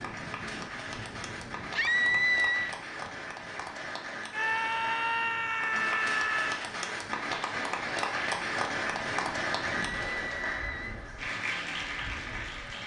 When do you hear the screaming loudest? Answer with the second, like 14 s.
2 s.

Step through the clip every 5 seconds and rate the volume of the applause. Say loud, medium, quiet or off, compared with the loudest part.
medium, loud, loud.